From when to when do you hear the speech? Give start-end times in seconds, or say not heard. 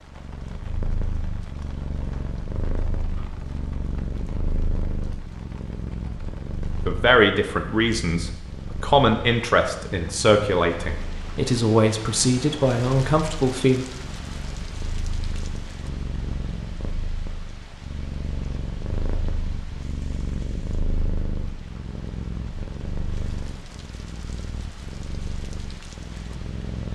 6.8-13.8.